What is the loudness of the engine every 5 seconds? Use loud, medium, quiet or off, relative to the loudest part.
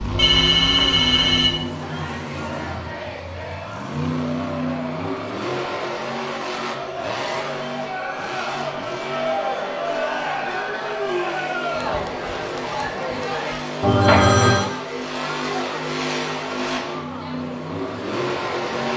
loud, loud, medium, loud.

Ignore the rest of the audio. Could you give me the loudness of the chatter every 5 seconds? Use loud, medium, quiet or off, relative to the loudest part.
medium, loud, loud, medium.